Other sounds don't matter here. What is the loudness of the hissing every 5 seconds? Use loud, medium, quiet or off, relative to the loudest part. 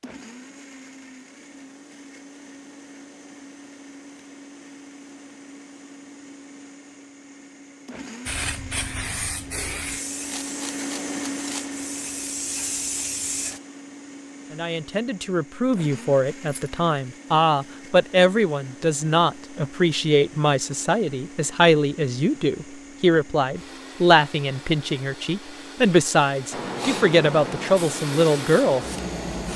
off, loud, loud, off, off, loud.